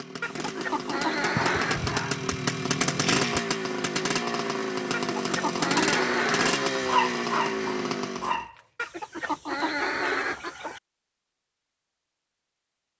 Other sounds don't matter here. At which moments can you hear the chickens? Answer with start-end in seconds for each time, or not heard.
0.2-1.9, 4.9-6.7, 8.8-10.8.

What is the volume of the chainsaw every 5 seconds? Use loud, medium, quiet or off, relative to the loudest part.
loud, loud, off.